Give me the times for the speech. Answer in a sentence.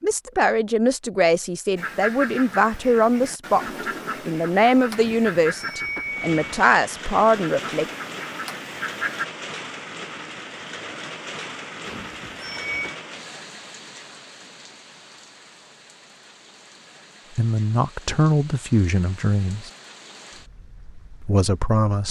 The speech can be heard from 0.0 to 7.8 s, from 17.4 to 19.7 s and from 21.2 to 22.0 s.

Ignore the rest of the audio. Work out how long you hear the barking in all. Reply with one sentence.
You can't hear the barking here.